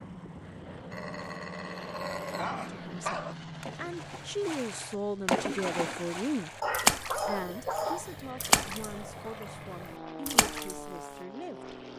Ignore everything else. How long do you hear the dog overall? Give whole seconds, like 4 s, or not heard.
4 s.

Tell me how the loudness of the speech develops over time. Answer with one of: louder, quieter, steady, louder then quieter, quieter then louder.
quieter.